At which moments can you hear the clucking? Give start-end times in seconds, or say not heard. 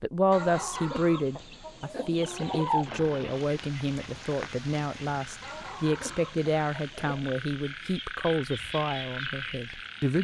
0.3-2.9, 5.4-7.4.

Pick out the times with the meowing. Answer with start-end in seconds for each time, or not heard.
not heard.